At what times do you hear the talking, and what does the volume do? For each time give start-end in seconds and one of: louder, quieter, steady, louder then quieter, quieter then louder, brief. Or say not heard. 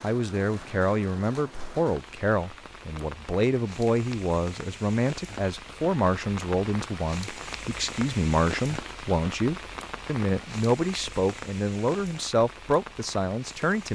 0.0-13.9 steady.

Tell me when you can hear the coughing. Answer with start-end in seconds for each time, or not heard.
not heard.